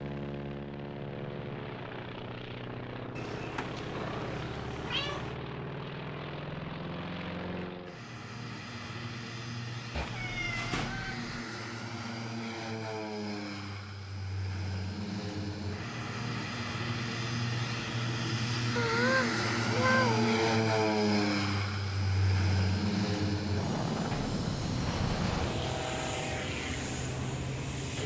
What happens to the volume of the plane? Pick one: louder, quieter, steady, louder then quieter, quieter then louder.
louder.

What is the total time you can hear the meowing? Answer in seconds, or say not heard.
5 s.